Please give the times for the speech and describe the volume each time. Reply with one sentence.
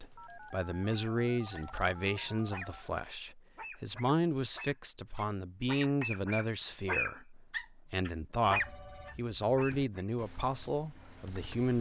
You can hear the speech from 0.0 to 11.7 s, at a steady volume.